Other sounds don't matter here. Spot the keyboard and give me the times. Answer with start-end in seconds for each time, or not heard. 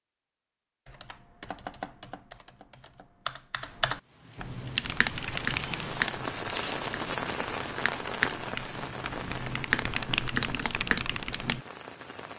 0.8-11.6.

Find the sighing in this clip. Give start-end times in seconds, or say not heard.
not heard.